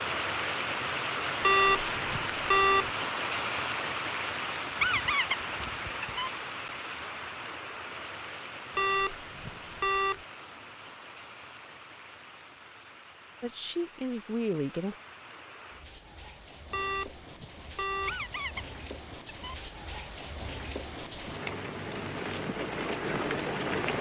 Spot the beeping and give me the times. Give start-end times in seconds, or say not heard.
1.4-2.9, 8.8-10.2, 16.7-18.2.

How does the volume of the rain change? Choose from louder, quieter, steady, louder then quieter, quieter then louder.
quieter then louder.